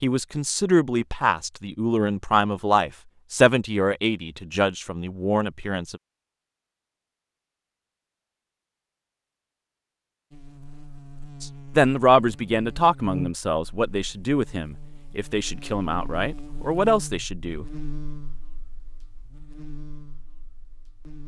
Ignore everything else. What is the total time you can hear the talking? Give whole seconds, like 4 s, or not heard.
12 s.